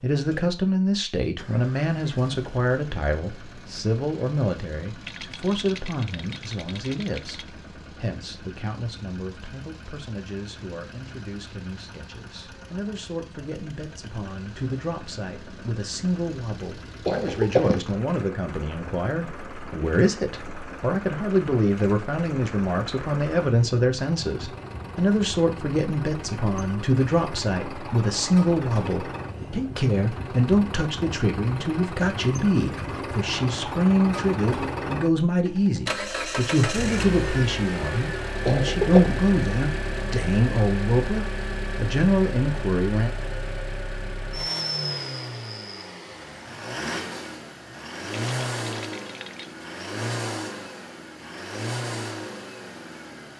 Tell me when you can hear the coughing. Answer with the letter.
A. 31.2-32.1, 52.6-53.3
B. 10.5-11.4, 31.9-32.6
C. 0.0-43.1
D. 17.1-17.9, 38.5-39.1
D.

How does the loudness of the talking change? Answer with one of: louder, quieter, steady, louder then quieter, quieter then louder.
quieter then louder.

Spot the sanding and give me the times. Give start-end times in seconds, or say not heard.
not heard.